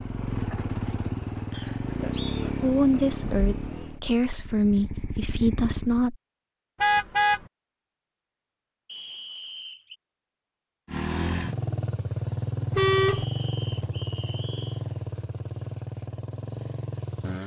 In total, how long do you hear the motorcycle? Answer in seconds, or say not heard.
13 s.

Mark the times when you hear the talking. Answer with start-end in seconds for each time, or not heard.
2.4-6.2.